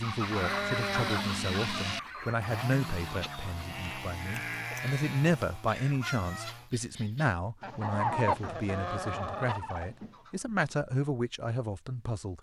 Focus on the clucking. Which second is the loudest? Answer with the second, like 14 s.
8 s.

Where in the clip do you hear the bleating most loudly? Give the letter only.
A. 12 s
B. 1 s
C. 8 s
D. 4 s
B.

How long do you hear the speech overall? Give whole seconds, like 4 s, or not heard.
12 s.